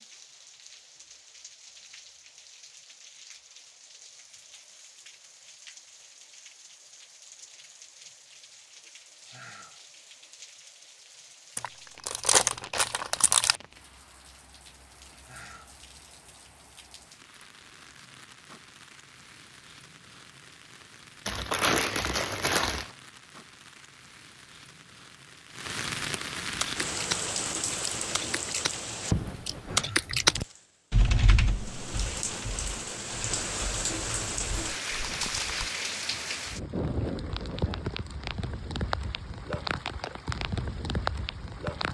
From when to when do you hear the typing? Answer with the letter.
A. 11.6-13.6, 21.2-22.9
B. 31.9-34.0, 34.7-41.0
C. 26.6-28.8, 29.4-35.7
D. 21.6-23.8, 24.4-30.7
C.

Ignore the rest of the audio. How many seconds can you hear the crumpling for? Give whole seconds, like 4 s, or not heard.
4 s.